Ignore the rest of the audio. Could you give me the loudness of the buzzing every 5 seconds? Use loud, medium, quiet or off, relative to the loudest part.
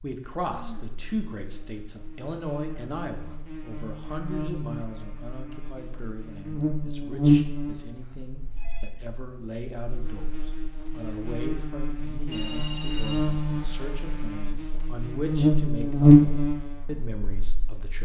quiet, medium, quiet, loud.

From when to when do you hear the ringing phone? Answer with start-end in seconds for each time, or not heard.
0.5-1.0, 8.0-8.9, 12.3-14.4.